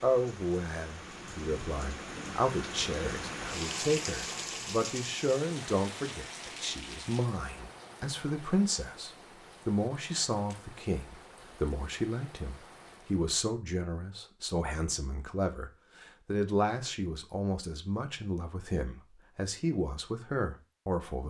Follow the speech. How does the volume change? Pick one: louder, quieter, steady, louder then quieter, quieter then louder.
steady.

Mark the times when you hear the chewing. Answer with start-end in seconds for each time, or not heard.
not heard.